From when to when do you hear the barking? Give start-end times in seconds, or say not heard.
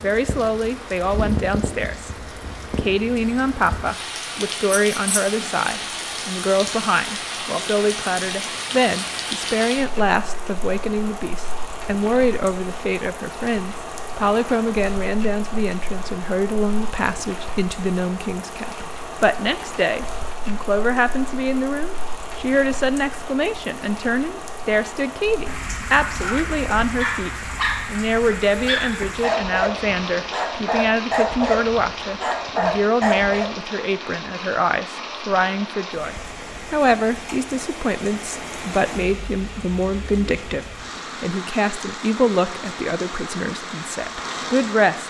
25.9-33.5.